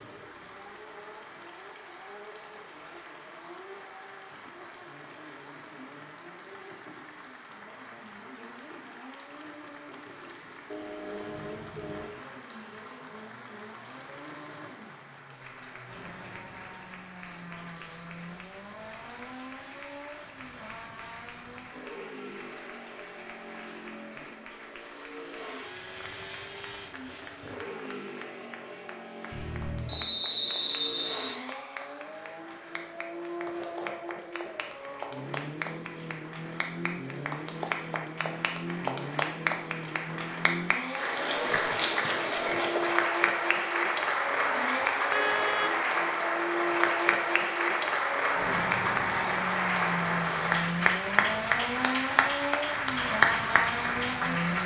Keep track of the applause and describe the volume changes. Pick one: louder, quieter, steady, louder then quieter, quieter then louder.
louder.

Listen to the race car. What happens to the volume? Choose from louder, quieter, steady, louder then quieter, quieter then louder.
louder.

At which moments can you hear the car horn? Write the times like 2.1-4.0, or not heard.
10.7-12.1, 29.3-30.0, 45.1-45.8.